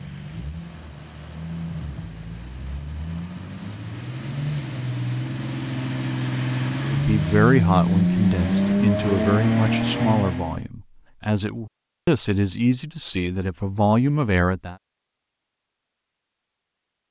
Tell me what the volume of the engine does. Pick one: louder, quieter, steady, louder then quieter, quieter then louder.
louder.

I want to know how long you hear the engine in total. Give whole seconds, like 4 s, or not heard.
11 s.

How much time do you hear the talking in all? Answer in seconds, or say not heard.
8 s.